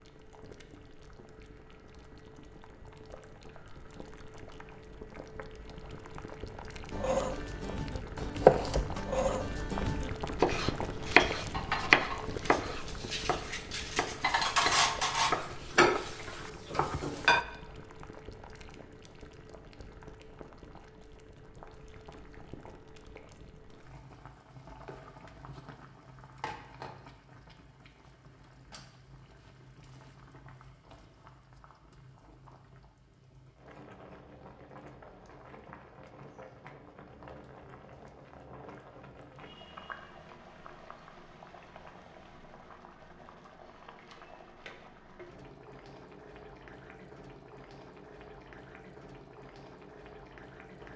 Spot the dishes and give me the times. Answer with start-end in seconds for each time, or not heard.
11.2-17.4.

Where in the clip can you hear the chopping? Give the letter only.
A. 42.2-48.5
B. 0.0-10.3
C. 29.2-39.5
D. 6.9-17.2
D.